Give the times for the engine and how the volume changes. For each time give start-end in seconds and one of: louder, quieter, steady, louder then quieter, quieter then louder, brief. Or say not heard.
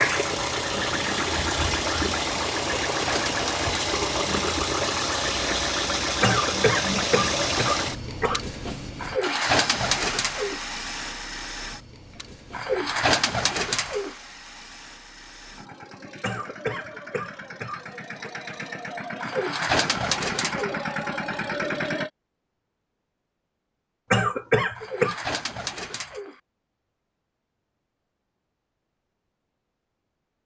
0.0-22.1 quieter then louder.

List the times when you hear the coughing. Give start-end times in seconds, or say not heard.
6.2-8.4, 16.2-18.3, 24.1-25.1.